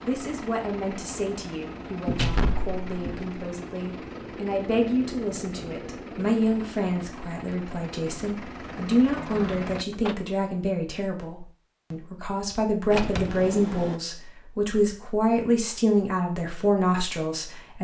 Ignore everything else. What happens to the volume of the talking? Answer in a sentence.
The volume of the talking goes up.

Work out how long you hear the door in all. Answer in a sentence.
The door can be heard for 4 seconds in total.